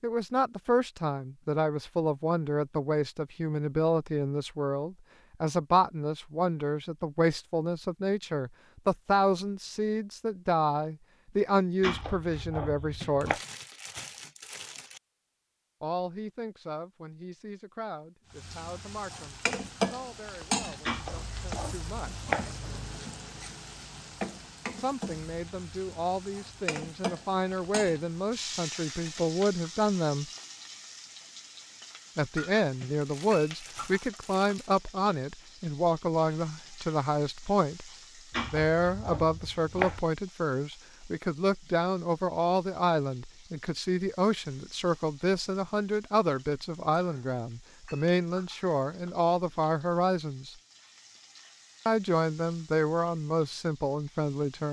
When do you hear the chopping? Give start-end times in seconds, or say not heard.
11.8-13.4, 20.9-22.5, 38.3-40.0.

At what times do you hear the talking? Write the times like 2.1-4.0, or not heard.
0.0-13.4, 15.8-22.3, 24.8-30.2, 32.1-50.5, 51.9-54.6.